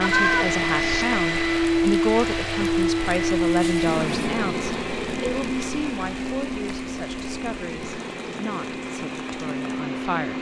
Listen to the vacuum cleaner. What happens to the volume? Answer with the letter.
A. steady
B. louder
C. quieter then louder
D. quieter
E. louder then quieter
D.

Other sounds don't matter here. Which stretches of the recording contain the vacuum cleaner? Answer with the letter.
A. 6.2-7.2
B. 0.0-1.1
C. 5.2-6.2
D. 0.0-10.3
D.